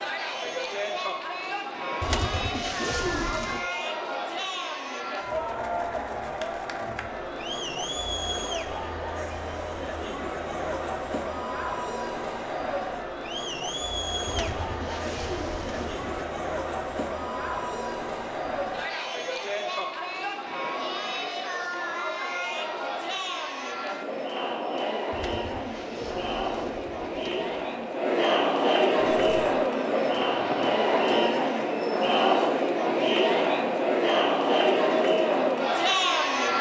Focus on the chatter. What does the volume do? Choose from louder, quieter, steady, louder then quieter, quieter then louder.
louder.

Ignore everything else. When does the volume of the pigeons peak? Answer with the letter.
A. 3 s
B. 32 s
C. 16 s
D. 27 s
A.